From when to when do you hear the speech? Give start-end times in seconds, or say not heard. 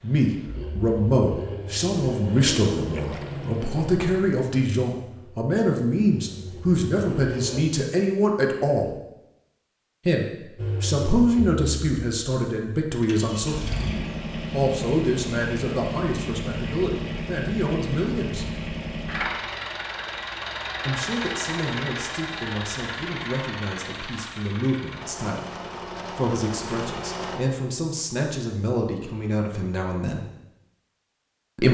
0.0-8.9, 10.1-13.7, 14.5-18.4, 20.9-30.2.